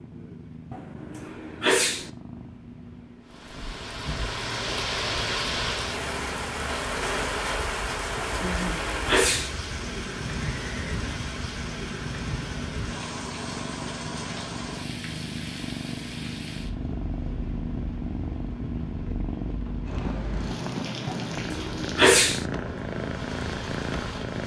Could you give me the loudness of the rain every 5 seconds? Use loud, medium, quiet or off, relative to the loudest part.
loud, loud, medium, quiet, medium.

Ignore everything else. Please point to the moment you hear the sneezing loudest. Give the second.
22 s.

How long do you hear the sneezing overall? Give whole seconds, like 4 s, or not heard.
4 s.